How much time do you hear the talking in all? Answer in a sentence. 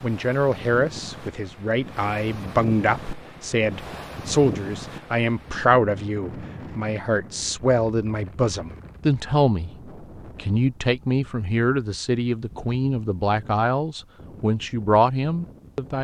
The talking can be heard for 15 seconds in total.